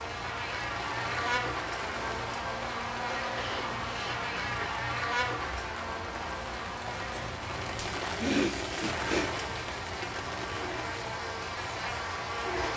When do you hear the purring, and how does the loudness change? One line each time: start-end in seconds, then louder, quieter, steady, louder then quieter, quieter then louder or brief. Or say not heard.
not heard.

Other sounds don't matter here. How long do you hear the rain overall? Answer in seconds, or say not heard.
13 s.